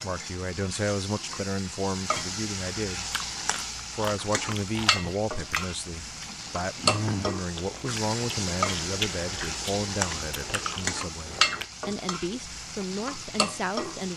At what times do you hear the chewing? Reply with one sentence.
You can hear the chewing from 3.0 to 11.7 s.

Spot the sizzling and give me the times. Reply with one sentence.
You can hear the sizzling from 0.0 to 14.1 s.